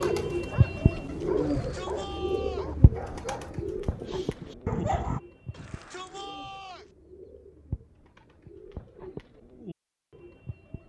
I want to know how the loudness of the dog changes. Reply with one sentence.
The loudness of the dog goes up.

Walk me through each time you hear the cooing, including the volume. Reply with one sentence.
You can hear the cooing from 0.0 to 10.8 s, getting quieter.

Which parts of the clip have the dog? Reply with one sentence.
You can hear the dog from 0.0 to 5.2 s.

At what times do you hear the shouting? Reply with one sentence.
The shouting can be heard from 1.4 to 2.8 s and from 5.5 to 6.9 s.